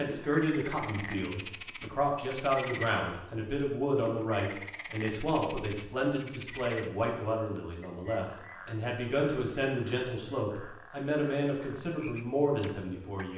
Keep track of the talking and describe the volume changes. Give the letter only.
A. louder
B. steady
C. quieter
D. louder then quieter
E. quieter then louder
B.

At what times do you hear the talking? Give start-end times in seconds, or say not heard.
0.0-13.3.